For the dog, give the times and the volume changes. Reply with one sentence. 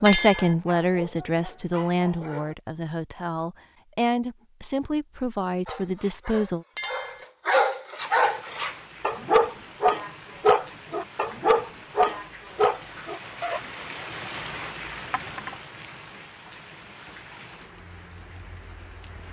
You can hear the dog briefly from 0.0 to 2.5 s; and from 5.7 to 13.6 s, getting louder.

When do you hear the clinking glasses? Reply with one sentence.
The clinking glasses can be heard from 0.1 to 0.6 s, from 6.8 to 7.2 s and from 15.1 to 15.6 s.